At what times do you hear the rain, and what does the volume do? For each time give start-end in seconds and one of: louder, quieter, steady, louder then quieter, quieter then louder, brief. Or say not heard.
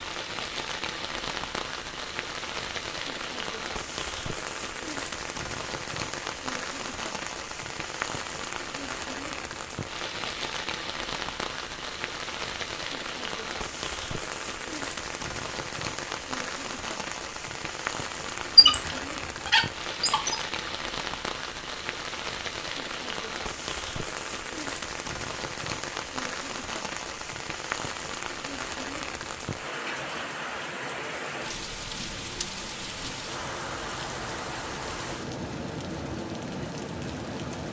0.0-37.6 steady.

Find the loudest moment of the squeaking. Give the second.
19 s.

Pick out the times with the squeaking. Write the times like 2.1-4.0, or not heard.
18.6-20.7.